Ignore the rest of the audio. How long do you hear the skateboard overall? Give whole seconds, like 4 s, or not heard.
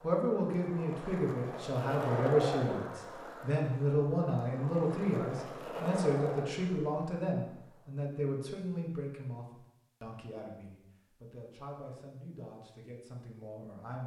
8 s.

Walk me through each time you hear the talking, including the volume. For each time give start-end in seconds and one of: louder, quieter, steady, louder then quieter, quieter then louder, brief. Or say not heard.
0.0-14.0 quieter.